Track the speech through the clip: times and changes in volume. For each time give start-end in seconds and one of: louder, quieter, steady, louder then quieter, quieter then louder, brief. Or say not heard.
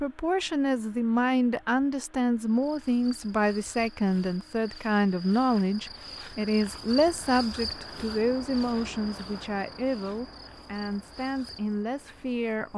0.0-12.7 quieter.